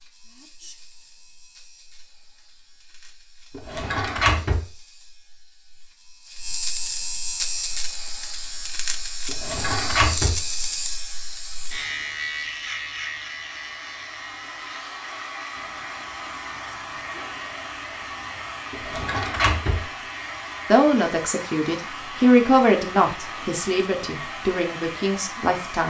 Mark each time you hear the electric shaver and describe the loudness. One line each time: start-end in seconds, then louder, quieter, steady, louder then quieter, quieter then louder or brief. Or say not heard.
0.0-25.8 louder then quieter.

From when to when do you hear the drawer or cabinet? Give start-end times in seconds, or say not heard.
3.5-4.6, 9.2-10.8, 18.7-19.9.